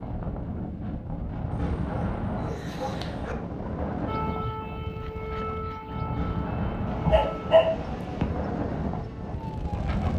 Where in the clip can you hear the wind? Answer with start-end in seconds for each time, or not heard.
0.0-10.1.